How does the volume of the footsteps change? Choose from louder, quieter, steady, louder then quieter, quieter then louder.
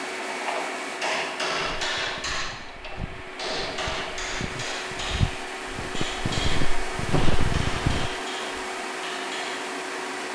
louder.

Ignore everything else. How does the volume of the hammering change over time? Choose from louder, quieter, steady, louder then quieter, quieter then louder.
quieter.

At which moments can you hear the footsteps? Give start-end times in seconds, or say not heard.
1.6-8.2.